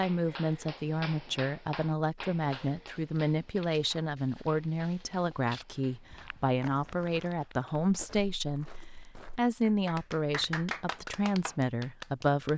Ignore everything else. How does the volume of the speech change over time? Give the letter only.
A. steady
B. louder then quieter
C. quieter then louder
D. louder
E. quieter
A.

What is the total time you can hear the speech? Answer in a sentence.
The speech can be heard for 12 seconds in total.